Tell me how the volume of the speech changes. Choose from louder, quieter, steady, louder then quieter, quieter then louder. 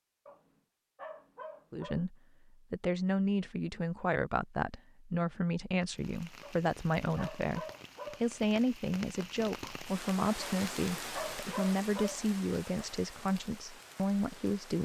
steady.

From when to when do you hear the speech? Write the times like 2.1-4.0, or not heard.
1.7-14.8.